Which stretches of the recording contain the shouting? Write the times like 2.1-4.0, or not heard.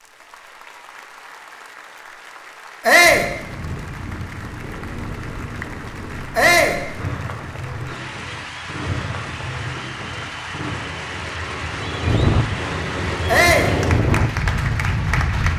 2.9-3.3, 6.3-6.8, 13.2-13.8.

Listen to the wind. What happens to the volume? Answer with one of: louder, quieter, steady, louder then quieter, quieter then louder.
louder.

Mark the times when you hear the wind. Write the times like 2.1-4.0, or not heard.
3.0-15.5.